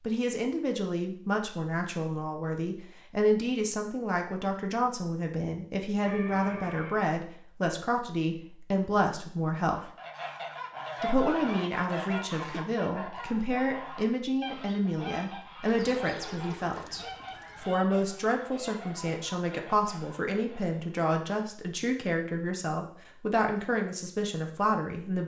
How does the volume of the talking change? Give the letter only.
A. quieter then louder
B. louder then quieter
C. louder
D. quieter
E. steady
E.